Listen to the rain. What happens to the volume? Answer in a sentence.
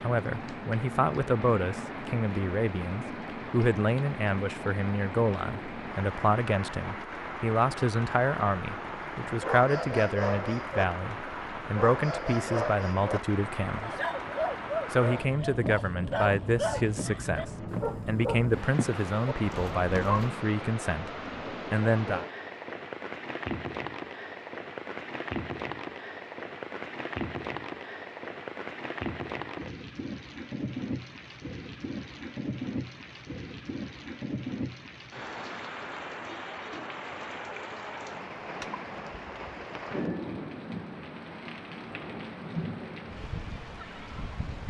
The volume of the rain stays about the same.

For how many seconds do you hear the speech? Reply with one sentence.
The speech can be heard for 21 seconds in total.